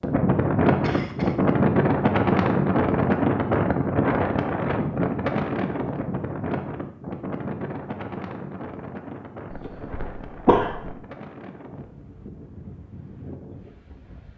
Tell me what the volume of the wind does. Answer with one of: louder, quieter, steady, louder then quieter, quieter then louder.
quieter.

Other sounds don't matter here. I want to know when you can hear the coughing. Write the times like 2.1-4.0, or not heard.
0.8-1.4, 9.5-10.9.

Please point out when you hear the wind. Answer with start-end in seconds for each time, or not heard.
0.0-14.3.